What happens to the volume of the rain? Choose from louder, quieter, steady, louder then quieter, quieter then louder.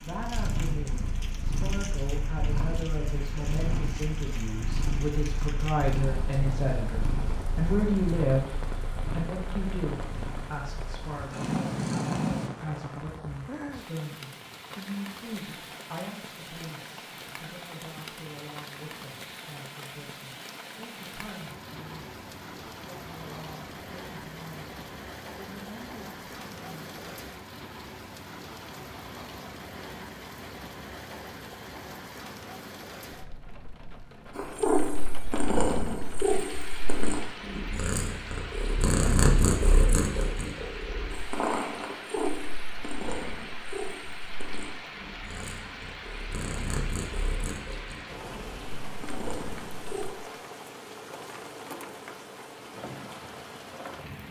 steady.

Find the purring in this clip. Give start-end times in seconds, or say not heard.
0.2-12.5, 34.4-50.1.